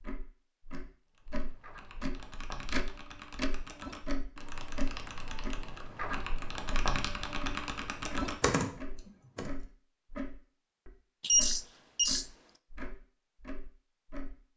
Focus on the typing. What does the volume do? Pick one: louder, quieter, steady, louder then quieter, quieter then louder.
louder.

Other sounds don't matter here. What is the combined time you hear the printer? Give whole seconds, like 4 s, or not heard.
not heard.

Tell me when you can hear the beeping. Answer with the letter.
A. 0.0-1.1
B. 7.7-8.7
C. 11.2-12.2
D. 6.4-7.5
C.